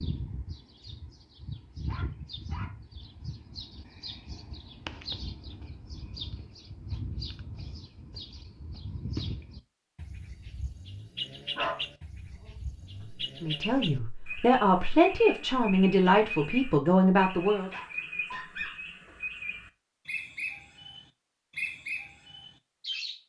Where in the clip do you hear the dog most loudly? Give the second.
12 s.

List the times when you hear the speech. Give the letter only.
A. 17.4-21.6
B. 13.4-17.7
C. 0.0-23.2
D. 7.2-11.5
B.